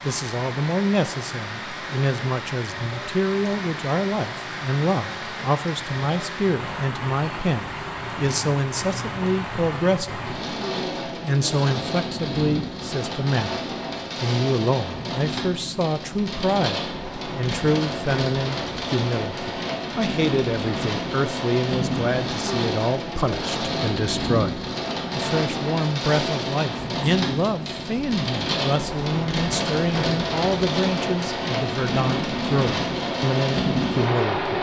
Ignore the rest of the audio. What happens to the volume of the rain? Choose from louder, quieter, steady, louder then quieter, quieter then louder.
louder.